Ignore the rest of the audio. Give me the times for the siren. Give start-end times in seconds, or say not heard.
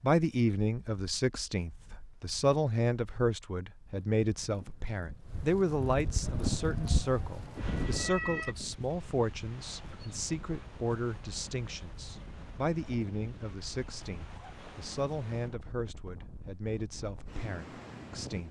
6.2-8.6.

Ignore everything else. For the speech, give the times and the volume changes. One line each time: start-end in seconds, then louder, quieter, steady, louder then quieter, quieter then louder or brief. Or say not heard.
0.0-18.4 quieter.